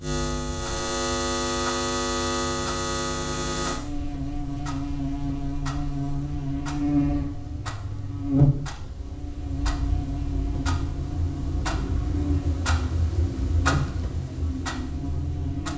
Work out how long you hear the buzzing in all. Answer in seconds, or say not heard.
16 s.